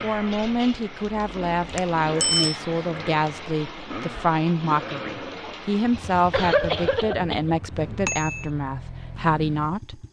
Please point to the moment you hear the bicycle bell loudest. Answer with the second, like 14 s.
2 s.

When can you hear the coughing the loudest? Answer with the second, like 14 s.
7 s.